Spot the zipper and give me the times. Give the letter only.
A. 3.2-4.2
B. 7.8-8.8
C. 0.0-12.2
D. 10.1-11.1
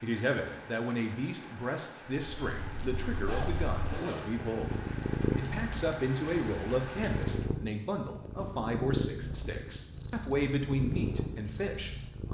A.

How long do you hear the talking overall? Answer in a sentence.
The talking can be heard for 12 seconds in total.